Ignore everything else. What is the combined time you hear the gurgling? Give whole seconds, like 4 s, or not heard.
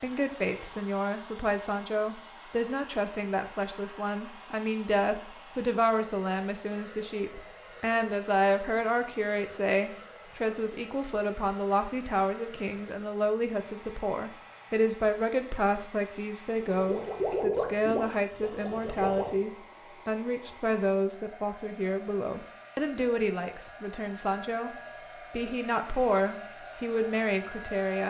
3 s.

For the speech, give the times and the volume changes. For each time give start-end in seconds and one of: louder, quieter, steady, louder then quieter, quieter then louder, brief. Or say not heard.
0.0-28.0 steady.